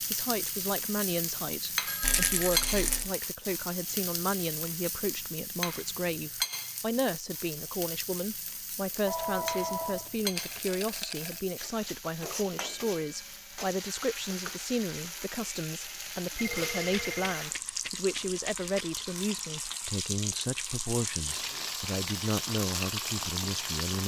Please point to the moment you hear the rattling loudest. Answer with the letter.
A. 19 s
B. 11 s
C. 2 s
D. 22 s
C.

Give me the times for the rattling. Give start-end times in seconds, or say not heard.
2.0-3.1, 10.3-11.4, 16.8-18.9.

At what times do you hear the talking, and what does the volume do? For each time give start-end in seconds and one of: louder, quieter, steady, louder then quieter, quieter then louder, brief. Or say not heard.
0.1-24.0 steady.